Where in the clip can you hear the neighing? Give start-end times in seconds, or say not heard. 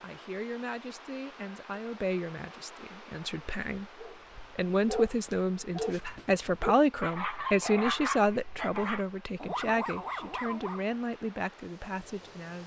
not heard.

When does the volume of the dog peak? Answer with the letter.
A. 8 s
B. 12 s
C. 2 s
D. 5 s
A.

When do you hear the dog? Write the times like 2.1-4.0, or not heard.
4.0-10.9.